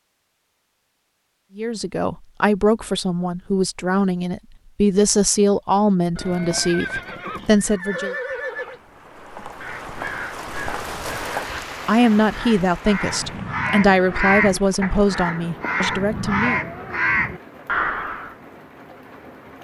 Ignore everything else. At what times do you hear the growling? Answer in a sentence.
You can't hear the growling here.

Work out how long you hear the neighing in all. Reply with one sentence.
You can hear the neighing for 3 seconds altogether.